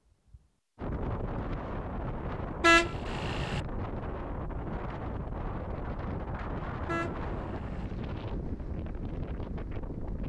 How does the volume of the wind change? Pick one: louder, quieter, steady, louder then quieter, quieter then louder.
steady.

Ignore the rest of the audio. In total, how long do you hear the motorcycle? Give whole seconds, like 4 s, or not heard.
not heard.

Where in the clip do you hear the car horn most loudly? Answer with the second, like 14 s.
3 s.